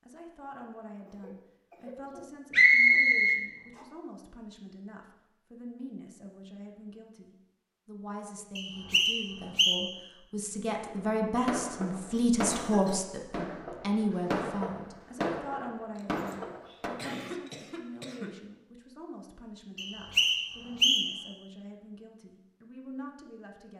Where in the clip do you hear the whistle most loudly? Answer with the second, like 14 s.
3 s.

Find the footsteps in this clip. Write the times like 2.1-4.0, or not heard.
not heard.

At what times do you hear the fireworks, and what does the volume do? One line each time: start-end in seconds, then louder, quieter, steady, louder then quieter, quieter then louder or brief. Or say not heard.
10.8-17.0 steady.